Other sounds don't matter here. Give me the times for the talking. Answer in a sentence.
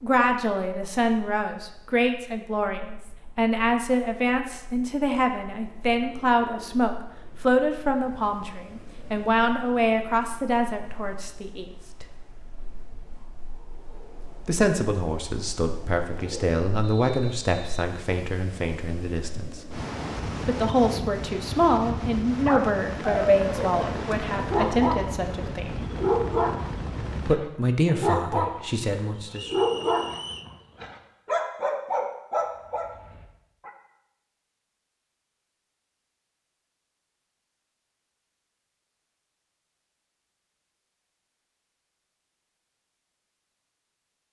The talking can be heard from 0.0 to 12.1 s, from 14.4 to 19.6 s, from 20.4 to 25.9 s and from 27.2 to 29.6 s.